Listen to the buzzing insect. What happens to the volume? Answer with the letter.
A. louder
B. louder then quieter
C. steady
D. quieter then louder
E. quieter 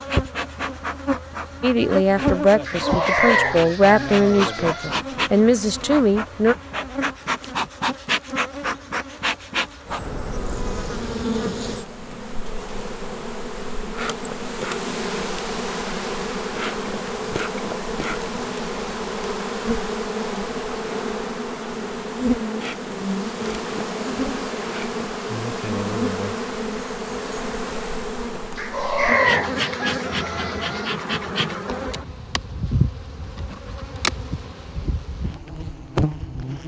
C.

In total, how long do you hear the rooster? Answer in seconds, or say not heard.
5 s.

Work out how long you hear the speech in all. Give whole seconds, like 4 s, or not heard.
5 s.